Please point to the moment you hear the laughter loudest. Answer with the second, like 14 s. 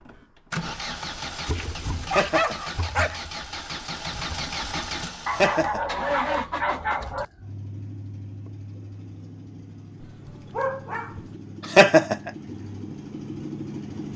12 s.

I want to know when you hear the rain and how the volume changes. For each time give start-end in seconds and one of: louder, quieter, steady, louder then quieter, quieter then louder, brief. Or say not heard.
not heard.